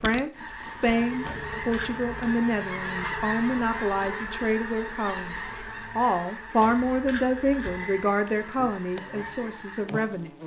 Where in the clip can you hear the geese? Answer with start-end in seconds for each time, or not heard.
0.3-9.8.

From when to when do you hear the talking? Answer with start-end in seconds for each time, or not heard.
0.0-10.3.